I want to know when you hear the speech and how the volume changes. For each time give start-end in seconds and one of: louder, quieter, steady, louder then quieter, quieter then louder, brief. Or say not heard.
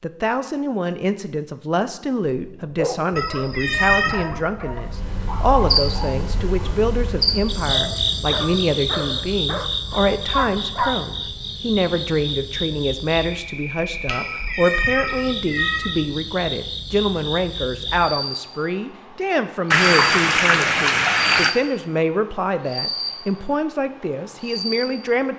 0.0-25.3 steady.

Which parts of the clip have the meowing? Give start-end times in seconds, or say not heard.
3.1-4.2, 14.1-15.9.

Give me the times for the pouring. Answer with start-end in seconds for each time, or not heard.
19.7-21.6.